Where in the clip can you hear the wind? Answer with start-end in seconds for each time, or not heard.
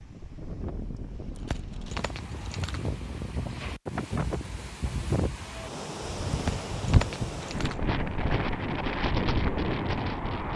0.0-10.5.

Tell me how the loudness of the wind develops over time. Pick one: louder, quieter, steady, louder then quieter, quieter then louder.
louder.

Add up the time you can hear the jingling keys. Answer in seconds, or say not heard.
3 s.